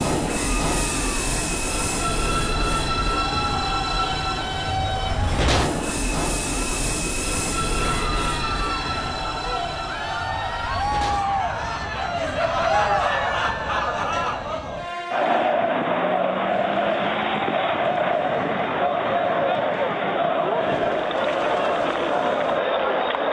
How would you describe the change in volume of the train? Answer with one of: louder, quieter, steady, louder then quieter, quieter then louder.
quieter.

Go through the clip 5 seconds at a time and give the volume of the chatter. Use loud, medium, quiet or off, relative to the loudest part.
quiet, medium, loud, loud, loud.